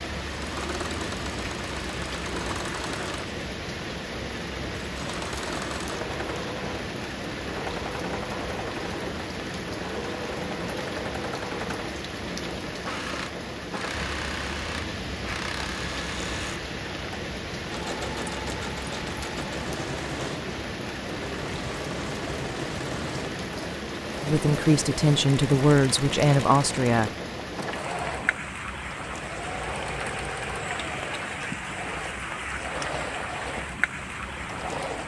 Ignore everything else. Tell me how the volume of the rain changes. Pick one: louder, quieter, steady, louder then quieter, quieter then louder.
steady.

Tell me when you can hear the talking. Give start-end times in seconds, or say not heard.
24.2-27.1.